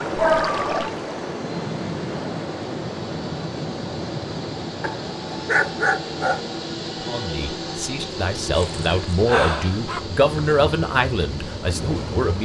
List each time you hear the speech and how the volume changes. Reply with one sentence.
You can hear the speech from 7.0 to 12.4 s, getting louder then quieter.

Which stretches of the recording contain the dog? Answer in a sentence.
The dog can be heard from 0.1 to 0.9 s, from 4.8 to 6.5 s and from 8.6 to 10.0 s.